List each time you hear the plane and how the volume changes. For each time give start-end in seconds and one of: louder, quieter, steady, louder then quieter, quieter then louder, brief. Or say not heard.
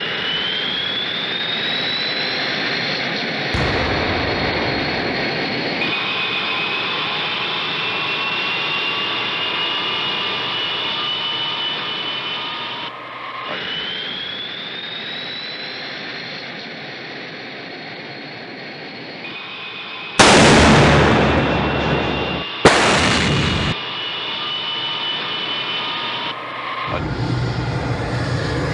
0.0-28.6 quieter then louder.